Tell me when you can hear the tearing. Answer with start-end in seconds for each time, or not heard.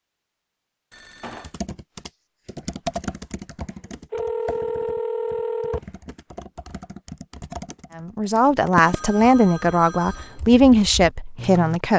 not heard.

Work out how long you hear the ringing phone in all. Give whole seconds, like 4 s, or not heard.
4 s.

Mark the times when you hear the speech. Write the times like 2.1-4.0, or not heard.
8.0-11.9.